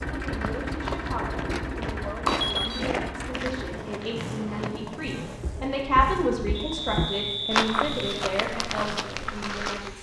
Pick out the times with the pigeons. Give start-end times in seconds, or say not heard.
not heard.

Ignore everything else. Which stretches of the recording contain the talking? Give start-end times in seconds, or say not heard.
0.2-9.9.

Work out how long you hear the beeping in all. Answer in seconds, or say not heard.
2 s.